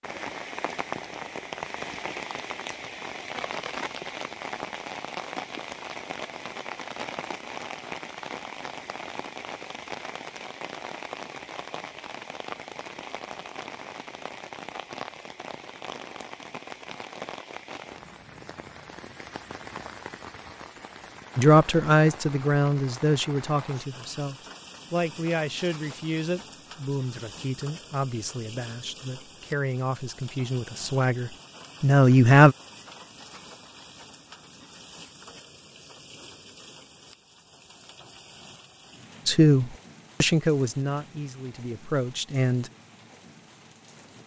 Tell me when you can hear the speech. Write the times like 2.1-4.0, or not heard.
21.4-32.5, 39.2-42.7.